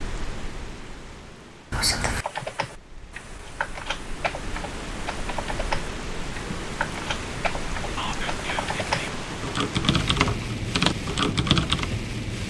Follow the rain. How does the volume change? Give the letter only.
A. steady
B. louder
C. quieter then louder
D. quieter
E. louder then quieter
B.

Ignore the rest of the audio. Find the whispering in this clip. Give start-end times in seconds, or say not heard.
1.7-2.2, 8.0-9.2.